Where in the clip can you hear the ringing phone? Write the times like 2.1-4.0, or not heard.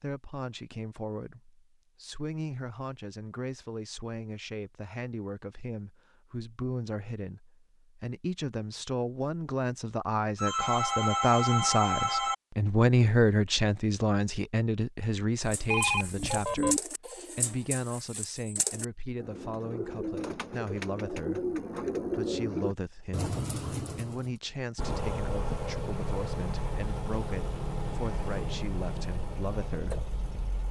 10.3-12.3, 15.7-16.8.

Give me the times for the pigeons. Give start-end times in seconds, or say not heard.
15.4-24.4.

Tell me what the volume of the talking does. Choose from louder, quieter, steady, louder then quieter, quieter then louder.
louder then quieter.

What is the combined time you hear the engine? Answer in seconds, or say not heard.
6 s.